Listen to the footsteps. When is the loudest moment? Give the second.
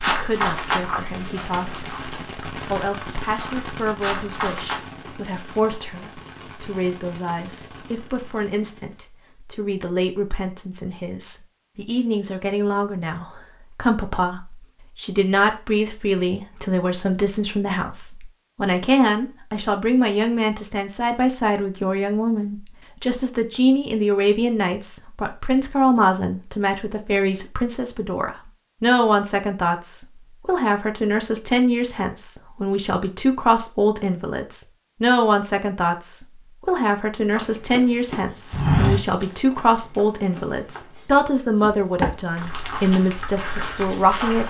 39 s.